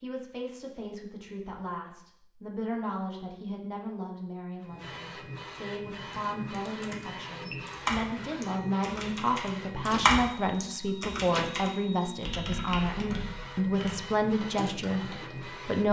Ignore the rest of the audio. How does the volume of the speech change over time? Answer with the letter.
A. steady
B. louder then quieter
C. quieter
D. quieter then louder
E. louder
E.